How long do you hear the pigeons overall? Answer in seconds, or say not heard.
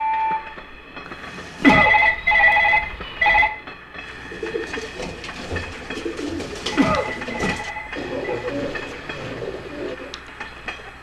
6 s.